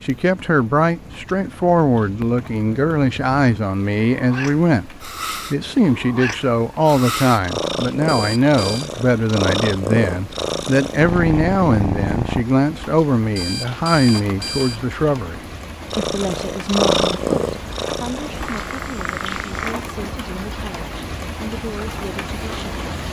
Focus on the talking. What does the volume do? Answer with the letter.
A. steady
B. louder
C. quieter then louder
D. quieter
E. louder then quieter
D.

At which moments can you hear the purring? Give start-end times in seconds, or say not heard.
0.0-12.4, 15.9-19.8.